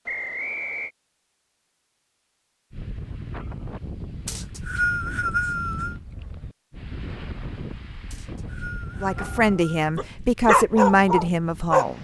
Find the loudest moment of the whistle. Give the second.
5 s.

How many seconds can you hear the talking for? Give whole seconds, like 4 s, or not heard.
3 s.